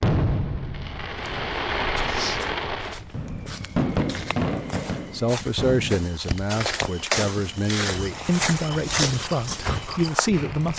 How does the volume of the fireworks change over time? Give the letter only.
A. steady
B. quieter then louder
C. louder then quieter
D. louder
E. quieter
E.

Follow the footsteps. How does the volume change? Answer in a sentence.
The volume of the footsteps goes up.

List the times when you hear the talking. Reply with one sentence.
You can hear the talking from 5.1 to 10.7 s.